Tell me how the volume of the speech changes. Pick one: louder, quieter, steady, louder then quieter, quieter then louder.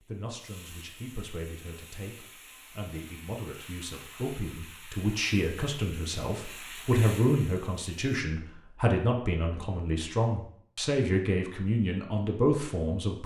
louder.